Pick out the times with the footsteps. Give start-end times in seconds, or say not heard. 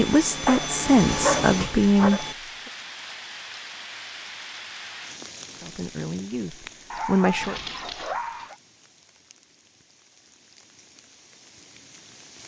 not heard.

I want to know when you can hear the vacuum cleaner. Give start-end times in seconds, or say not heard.
0.0-2.4.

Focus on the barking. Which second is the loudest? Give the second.
1 s.